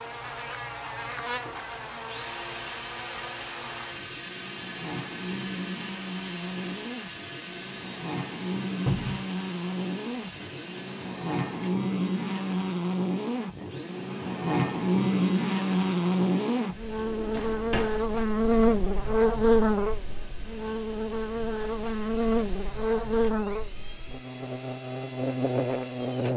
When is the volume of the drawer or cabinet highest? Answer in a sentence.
The volume of the drawer or cabinet peaks at 9 seconds.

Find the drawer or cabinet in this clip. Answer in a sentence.
The drawer or cabinet can be heard from 8.8 to 9.2 s and from 16.9 to 17.9 s.